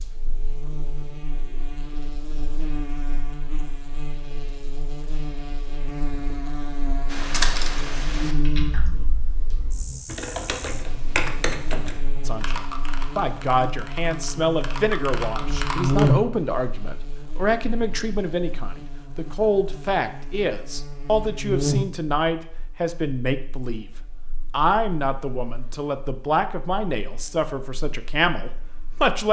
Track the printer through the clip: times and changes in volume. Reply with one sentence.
You can't hear the printer here.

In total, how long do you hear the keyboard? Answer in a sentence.
You can hear the keyboard for 9 seconds altogether.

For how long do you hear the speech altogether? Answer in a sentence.
You can hear the speech for 16 seconds altogether.